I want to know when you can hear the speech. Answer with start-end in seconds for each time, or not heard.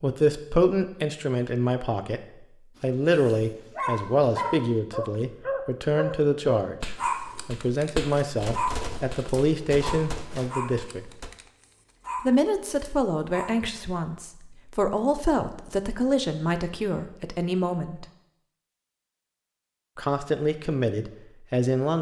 0.0-11.1, 12.2-18.1, 19.9-21.9.